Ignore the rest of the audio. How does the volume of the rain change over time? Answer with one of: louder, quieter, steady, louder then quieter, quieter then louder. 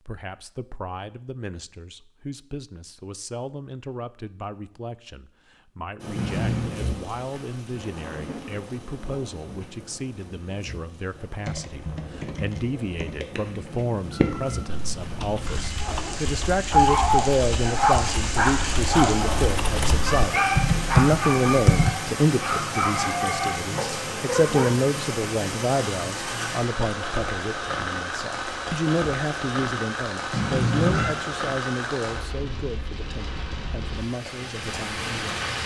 louder.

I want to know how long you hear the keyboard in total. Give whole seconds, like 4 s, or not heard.
11 s.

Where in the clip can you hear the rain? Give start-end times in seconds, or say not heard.
6.0-35.6.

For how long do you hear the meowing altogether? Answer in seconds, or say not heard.
4 s.